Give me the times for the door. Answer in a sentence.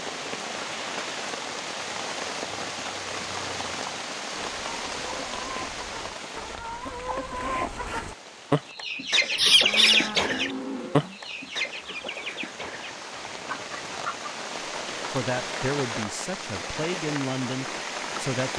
You can't hear the door here.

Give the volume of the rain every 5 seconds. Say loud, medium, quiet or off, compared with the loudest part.
loud, medium, medium, loud.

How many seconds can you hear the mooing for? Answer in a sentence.
You can hear the mooing for 2 seconds altogether.